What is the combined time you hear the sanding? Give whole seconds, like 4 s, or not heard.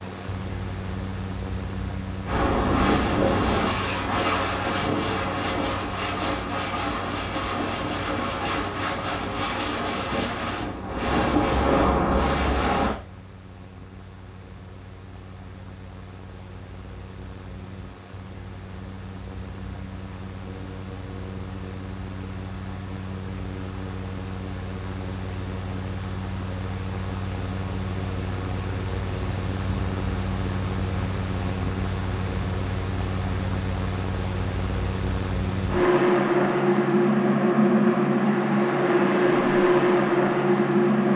11 s.